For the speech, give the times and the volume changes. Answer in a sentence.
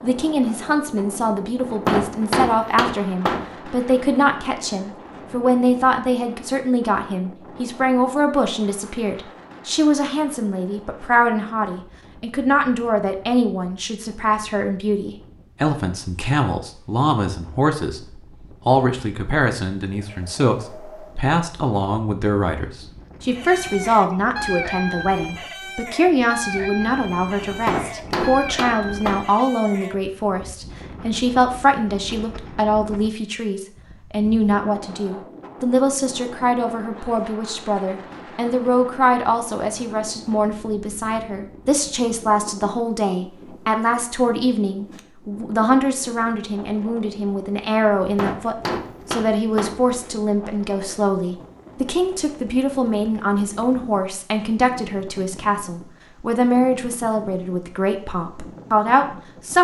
You can hear the speech from 0.0 to 59.5 s, at a steady volume.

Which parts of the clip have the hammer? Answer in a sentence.
You can hear the hammer from 1.9 to 3.5 s, from 27.6 to 29.3 s and from 48.1 to 49.9 s.